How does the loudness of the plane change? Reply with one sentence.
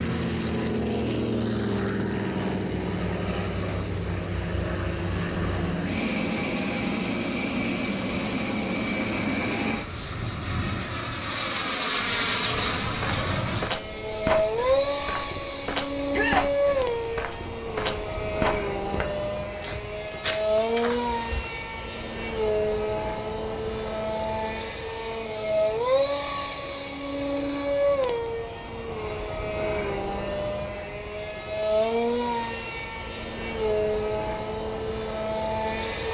The volume of the plane stays about the same.